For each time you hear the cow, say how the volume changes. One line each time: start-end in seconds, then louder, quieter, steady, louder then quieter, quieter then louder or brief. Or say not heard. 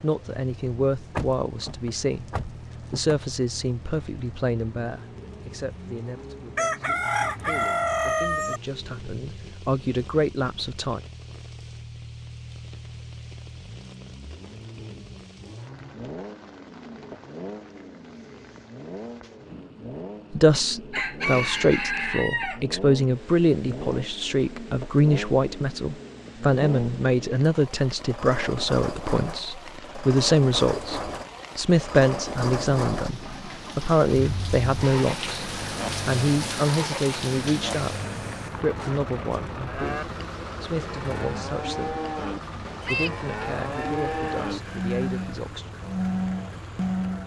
39.6-47.2 louder.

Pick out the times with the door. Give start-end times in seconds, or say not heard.
1.1-3.1.